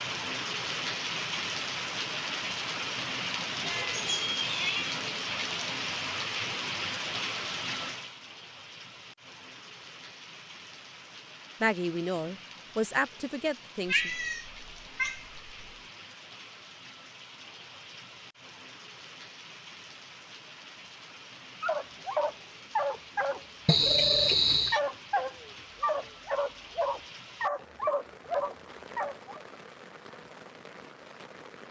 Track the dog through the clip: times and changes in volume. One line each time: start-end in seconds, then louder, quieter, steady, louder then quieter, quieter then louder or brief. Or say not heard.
21.6-29.4 steady.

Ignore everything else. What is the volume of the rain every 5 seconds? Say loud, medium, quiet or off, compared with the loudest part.
loud, loud, quiet, quiet, quiet, quiet, quiet.